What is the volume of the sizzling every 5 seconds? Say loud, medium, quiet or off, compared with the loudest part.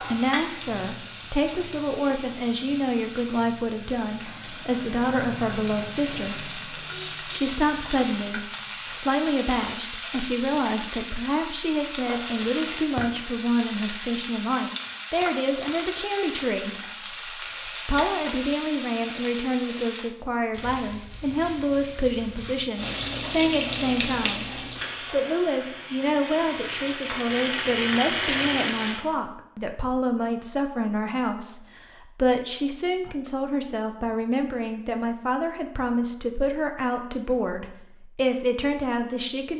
medium, loud, loud, loud, loud, loud, off, off.